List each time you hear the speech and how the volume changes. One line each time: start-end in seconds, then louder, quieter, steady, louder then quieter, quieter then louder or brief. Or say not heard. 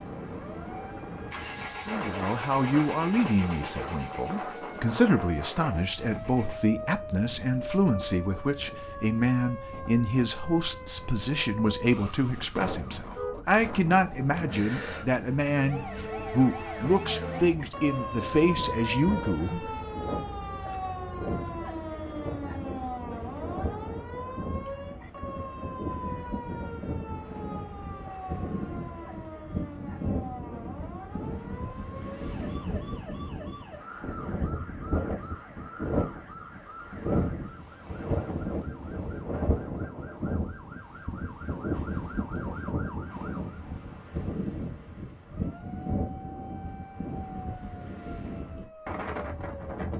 1.9-19.7 steady.